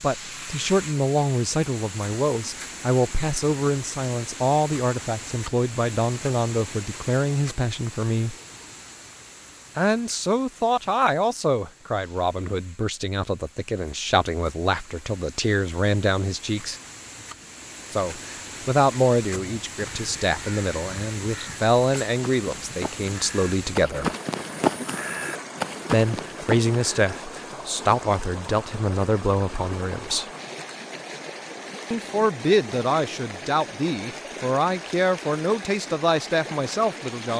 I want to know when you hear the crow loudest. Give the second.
25 s.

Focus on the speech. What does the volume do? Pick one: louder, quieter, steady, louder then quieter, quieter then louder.
steady.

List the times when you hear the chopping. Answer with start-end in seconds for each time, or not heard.
not heard.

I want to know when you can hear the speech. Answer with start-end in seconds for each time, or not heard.
0.0-8.3, 9.8-16.8, 17.9-24.1, 25.9-30.2, 31.9-37.3.